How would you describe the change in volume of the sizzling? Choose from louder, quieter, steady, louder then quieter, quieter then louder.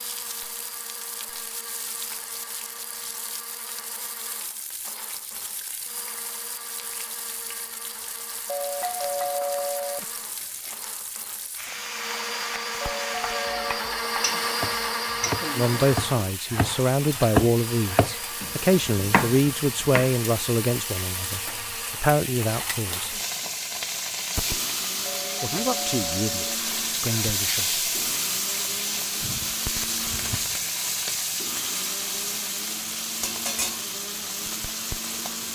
louder.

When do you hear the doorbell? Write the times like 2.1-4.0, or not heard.
8.4-10.1, 12.8-13.9, 25.1-26.6.